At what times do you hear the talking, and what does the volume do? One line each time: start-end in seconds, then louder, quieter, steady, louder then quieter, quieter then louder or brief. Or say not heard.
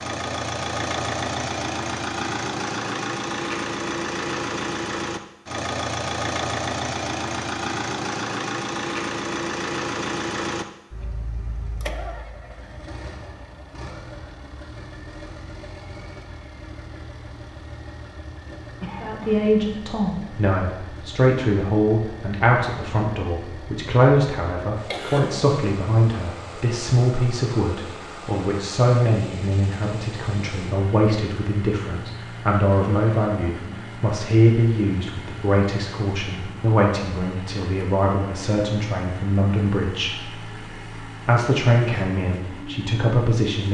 19.0-43.7 steady.